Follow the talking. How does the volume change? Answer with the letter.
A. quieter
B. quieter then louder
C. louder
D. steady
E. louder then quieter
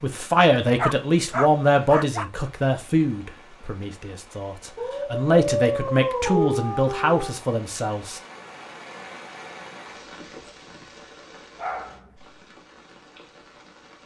B.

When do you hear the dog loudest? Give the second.
6 s.